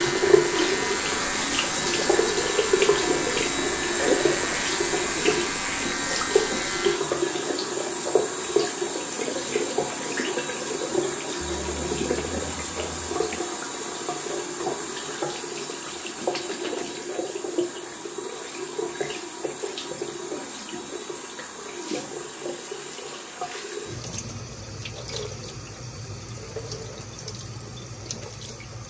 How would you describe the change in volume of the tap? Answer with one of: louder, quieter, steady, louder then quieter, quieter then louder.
quieter.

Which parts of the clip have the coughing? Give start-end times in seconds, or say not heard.
11.4-13.4.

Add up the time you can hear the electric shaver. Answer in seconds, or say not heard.
7 s.